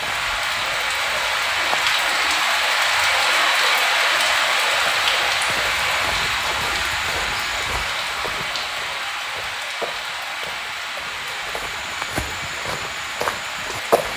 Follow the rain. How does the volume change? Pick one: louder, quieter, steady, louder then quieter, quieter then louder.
quieter.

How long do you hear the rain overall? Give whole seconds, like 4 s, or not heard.
14 s.